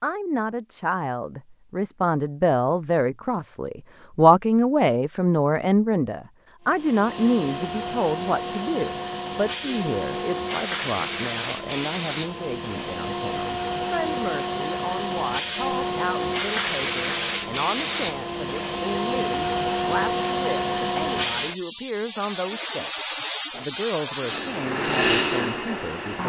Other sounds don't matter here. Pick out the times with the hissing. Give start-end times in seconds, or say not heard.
6.7-26.2.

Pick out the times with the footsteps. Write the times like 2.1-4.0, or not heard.
not heard.